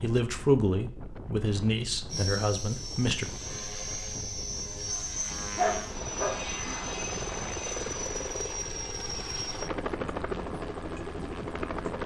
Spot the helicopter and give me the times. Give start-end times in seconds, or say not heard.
2.1-12.0.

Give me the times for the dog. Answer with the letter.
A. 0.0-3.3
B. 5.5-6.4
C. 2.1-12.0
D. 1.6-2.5
B.